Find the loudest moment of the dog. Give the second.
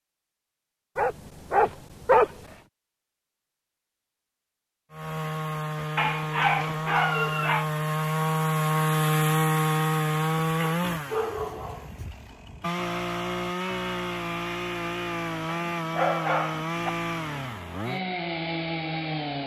2 s.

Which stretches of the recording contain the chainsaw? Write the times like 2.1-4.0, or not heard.
4.9-19.4.